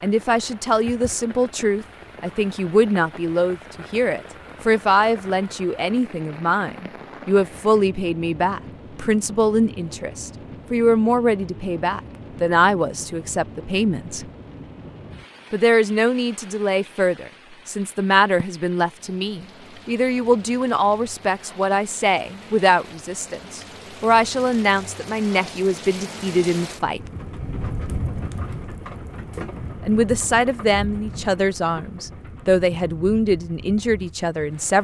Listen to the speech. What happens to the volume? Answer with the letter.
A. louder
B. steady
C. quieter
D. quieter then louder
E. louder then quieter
B.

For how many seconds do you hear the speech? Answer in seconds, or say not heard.
31 s.